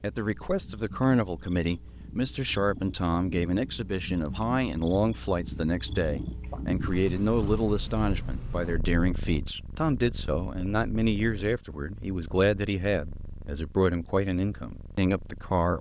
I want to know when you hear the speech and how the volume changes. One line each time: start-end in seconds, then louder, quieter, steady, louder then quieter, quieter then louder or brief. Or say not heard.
0.0-15.7 steady.